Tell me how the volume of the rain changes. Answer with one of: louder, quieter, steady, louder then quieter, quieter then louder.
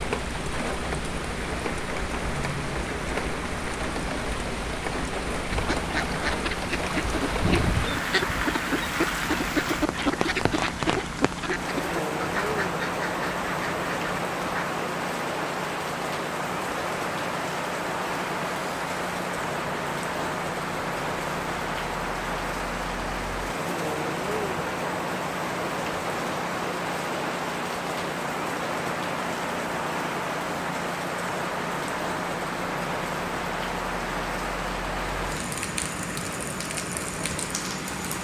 steady.